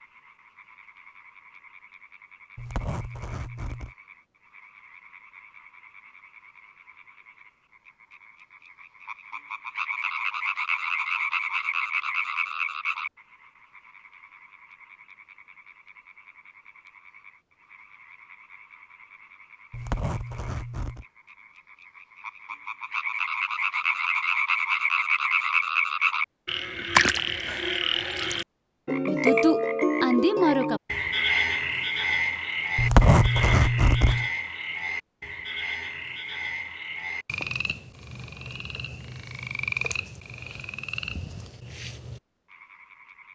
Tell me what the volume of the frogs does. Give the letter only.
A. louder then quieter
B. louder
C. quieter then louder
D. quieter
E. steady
A.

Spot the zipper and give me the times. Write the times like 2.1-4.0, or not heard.
2.5-3.9, 19.7-21.1, 32.8-34.2.